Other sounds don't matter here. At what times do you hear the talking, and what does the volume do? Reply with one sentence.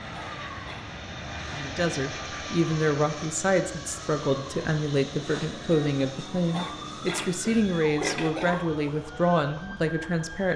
You can hear the talking from 1.5 to 10.5 s, at a steady volume.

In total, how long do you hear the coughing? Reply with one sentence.
The coughing can be heard for 3 seconds in total.